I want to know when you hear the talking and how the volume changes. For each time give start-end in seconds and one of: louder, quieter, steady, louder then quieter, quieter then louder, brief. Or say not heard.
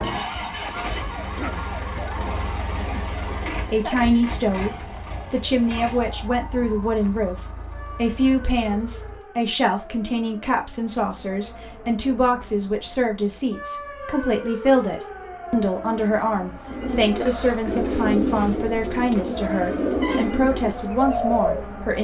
2.6-21.9 steady.